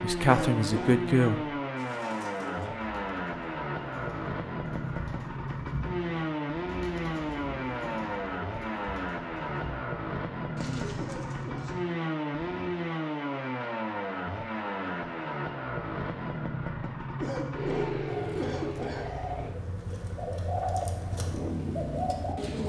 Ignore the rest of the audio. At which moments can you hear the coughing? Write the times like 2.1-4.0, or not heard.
0.2-1.1, 10.9-11.8, 17.1-19.3.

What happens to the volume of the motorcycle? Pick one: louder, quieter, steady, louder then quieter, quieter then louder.
steady.